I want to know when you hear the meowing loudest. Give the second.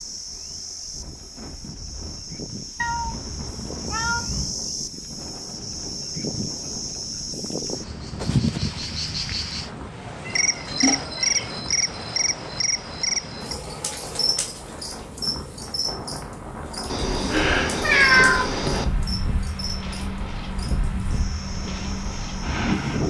18 s.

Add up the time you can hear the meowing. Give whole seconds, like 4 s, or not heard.
5 s.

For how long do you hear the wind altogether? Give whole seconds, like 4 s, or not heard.
23 s.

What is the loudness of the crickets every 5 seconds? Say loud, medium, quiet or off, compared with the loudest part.
medium, loud, loud, medium, quiet.